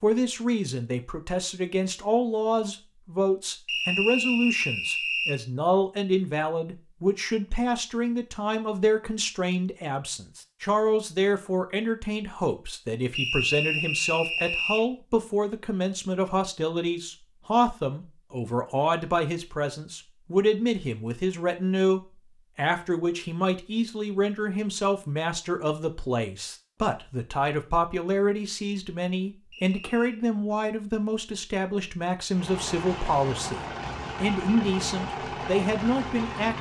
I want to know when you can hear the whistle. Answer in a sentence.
You can hear the whistle from 3.6 to 5.3 s, from 13.2 to 14.8 s and from 29.5 to 30.2 s.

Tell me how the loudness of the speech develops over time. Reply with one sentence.
The volume of the speech stays about the same.